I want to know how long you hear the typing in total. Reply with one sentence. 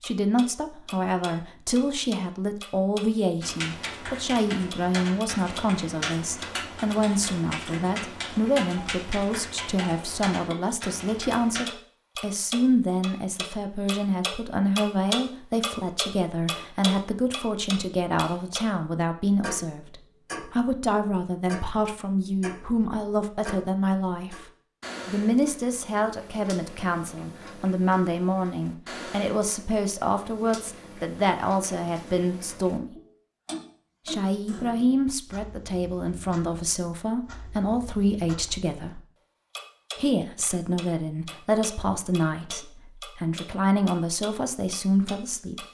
The typing can be heard for 8 seconds in total.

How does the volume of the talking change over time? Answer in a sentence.
The volume of the talking stays about the same.